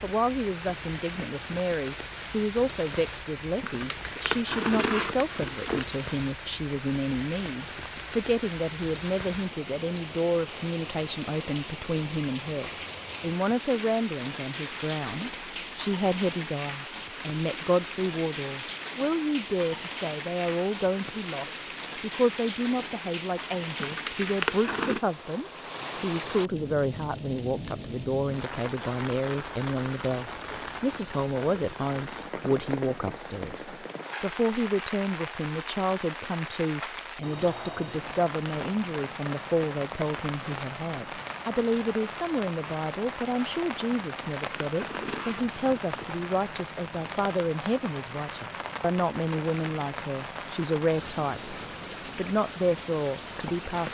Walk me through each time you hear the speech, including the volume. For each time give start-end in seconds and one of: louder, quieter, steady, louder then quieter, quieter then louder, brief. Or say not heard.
0.0-51.5 steady
52.1-53.8 brief.